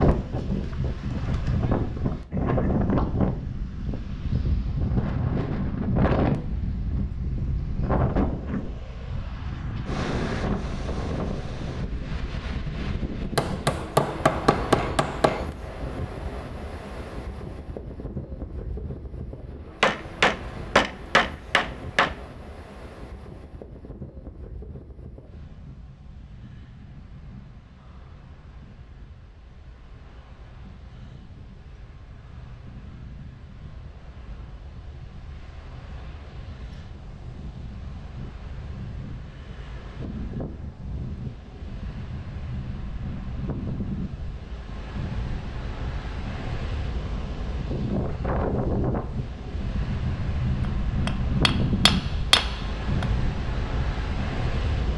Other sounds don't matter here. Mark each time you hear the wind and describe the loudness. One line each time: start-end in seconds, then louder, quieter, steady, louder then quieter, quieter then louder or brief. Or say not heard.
0.0-54.9 quieter then louder.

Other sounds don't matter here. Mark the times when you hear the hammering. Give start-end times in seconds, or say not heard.
13.3-15.4, 19.8-22.1, 51.0-53.0.